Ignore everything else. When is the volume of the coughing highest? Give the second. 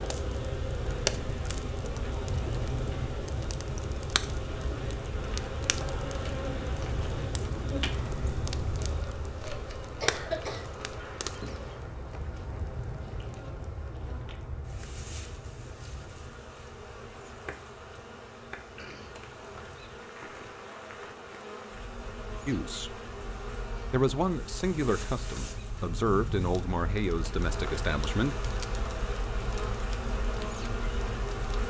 10 s.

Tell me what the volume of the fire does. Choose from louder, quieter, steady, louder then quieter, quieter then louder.
quieter then louder.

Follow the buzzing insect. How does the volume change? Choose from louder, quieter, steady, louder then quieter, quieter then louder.
quieter then louder.